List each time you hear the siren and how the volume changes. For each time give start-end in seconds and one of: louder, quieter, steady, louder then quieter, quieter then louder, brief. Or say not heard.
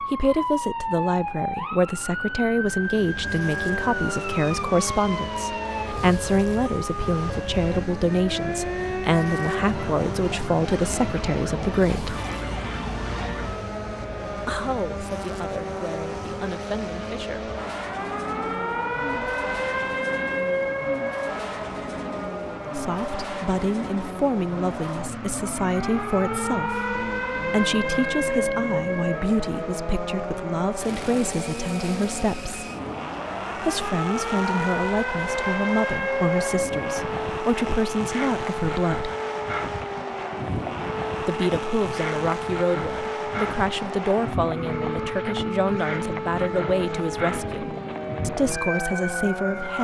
0.0-49.7 steady.